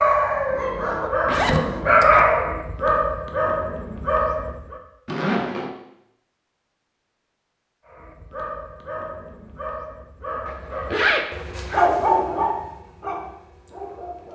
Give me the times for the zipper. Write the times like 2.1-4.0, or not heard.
1.2-2.2, 5.0-5.7, 10.4-11.9.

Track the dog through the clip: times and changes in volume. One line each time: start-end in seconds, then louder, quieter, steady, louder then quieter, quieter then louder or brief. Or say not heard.
0.0-4.8 louder then quieter
7.8-14.3 louder then quieter.